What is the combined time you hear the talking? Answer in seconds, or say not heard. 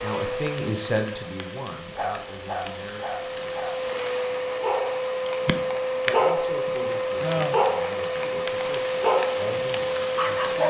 8 s.